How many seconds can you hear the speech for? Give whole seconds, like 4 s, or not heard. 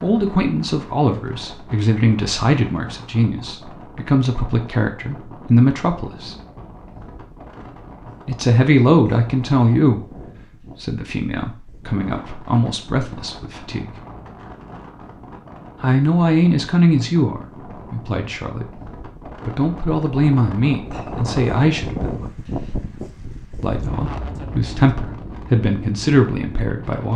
22 s.